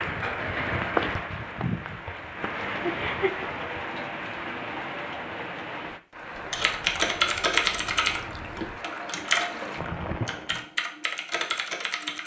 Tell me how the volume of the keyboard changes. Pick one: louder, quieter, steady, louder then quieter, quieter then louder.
quieter.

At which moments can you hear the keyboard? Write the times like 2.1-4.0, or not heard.
6.5-12.2.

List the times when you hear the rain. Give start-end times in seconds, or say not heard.
0.0-10.7.